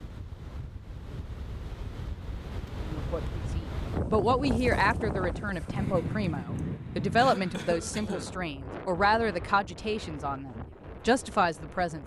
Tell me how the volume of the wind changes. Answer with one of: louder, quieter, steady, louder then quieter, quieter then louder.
louder then quieter.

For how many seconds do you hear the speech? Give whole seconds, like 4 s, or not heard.
9 s.